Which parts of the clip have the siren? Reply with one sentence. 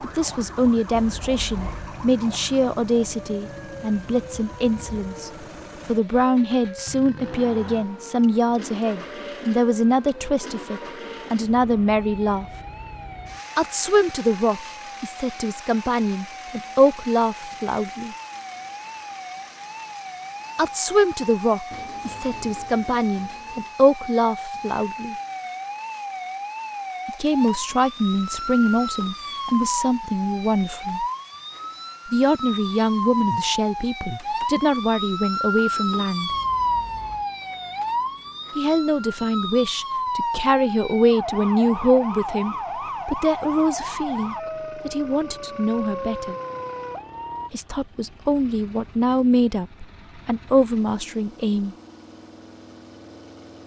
The siren can be heard from 0.0 to 47.5 s.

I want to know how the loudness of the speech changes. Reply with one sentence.
The loudness of the speech stays about the same.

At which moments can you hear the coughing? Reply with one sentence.
You can't hear the coughing here.